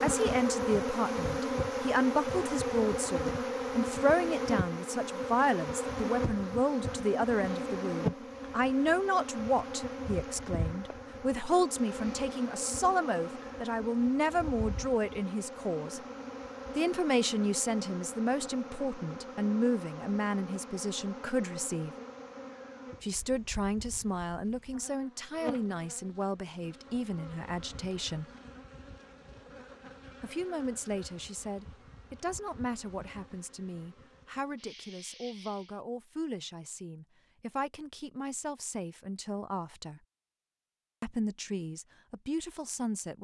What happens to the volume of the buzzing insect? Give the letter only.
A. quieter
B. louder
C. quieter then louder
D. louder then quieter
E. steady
A.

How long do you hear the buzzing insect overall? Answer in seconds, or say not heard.
36 s.